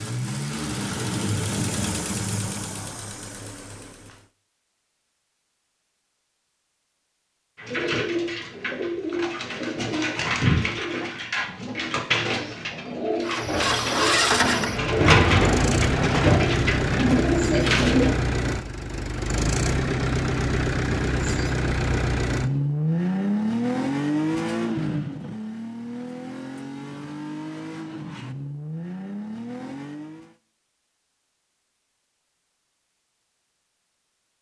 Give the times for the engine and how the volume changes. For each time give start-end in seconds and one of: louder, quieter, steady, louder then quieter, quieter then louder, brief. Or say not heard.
0.0-4.2 quieter
13.2-30.4 quieter.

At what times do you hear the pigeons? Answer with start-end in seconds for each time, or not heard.
7.5-18.1.